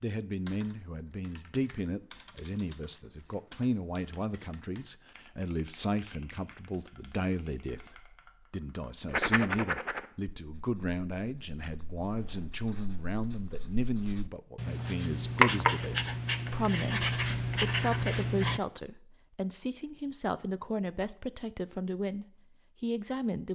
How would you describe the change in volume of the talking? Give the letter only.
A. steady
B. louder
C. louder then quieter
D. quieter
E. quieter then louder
A.